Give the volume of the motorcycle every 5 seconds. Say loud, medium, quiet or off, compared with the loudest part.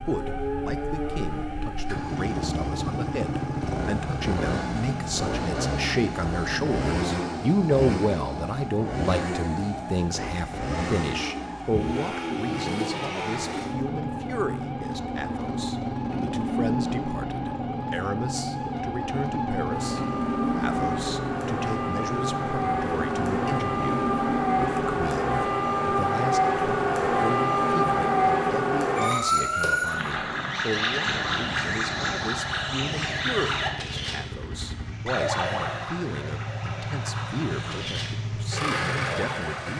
loud, loud, loud, loud, loud, medium, medium, loud.